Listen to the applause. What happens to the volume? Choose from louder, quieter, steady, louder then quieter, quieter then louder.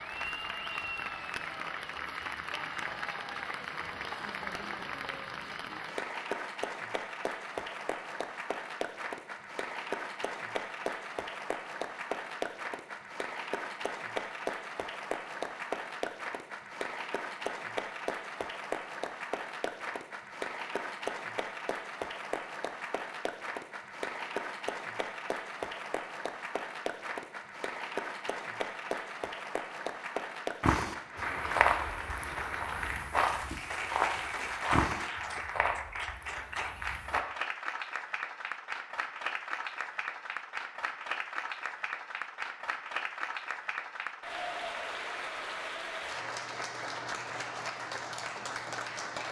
steady.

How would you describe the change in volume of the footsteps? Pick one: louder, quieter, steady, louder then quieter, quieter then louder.
quieter.